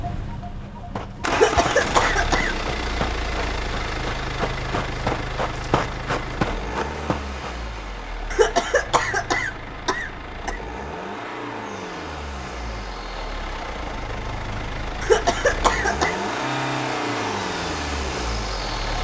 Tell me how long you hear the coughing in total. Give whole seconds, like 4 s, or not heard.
5 s.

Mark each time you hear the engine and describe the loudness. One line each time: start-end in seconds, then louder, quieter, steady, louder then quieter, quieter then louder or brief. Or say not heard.
0.0-18.9 quieter then louder.